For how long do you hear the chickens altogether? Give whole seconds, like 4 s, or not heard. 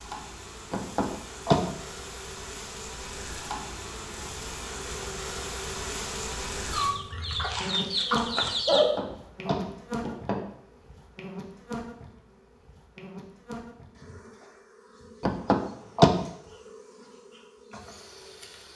2 s.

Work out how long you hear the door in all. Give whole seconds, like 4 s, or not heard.
4 s.